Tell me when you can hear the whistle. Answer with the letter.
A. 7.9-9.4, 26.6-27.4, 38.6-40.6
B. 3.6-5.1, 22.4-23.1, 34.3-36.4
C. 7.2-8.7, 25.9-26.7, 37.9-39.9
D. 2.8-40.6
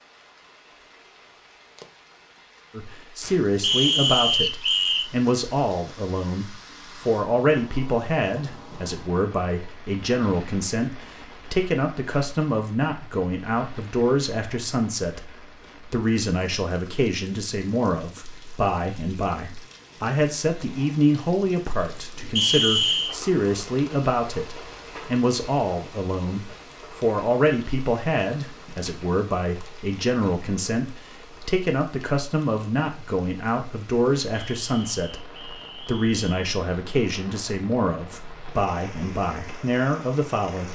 B.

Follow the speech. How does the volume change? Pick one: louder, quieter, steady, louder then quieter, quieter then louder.
steady.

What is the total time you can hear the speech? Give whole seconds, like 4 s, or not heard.
38 s.